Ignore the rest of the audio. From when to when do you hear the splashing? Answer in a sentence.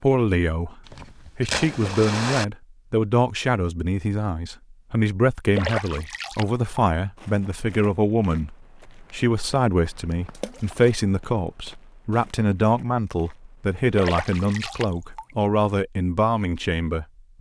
The splashing can be heard from 0.8 to 2.5 s, from 5.5 to 6.9 s, from 10.3 to 10.9 s and from 13.9 to 15.3 s.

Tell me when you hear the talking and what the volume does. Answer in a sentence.
You can hear the talking from 0.0 to 17.3 s, at a steady volume.